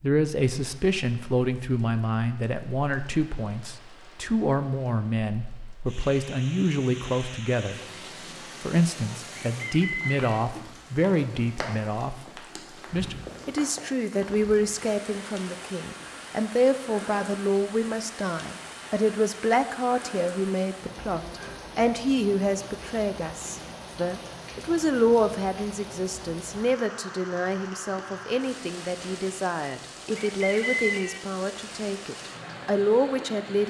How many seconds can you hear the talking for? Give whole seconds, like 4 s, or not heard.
32 s.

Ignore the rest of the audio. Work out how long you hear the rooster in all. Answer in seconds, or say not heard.
2 s.